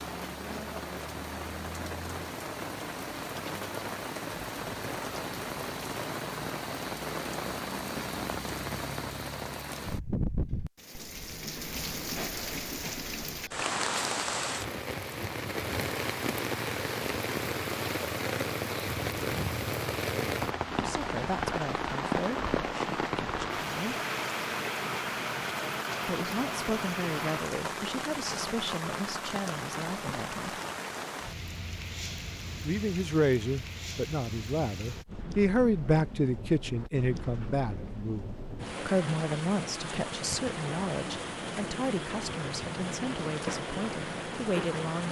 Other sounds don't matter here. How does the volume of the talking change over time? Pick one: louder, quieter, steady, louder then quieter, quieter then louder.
louder then quieter.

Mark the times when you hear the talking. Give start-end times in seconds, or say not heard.
20.6-23.9, 26.1-30.6, 32.6-45.0.